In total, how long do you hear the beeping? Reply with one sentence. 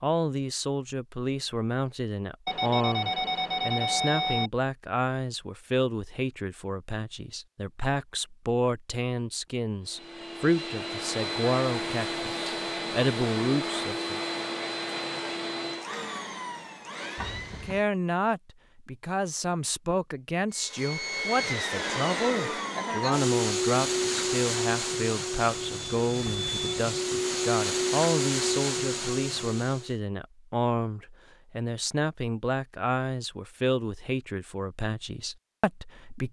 The beeping can be heard for 4 seconds in total.